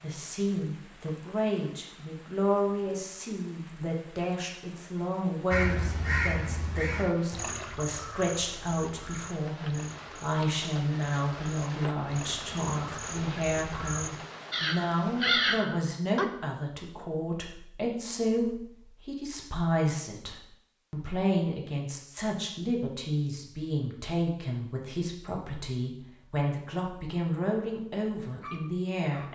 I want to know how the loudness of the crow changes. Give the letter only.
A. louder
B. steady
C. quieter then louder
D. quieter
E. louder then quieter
C.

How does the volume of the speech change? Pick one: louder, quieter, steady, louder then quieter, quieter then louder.
steady.